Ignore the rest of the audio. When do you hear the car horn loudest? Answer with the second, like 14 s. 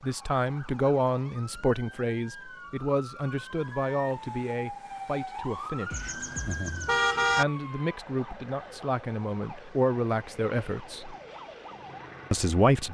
7 s.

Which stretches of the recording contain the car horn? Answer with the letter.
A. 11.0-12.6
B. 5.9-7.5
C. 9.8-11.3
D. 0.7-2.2
B.